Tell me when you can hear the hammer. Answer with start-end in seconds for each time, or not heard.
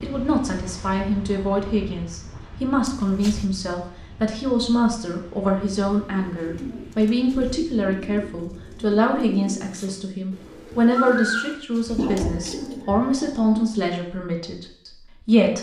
not heard.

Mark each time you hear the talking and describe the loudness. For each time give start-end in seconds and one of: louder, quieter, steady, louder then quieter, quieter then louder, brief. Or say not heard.
0.0-15.5 steady.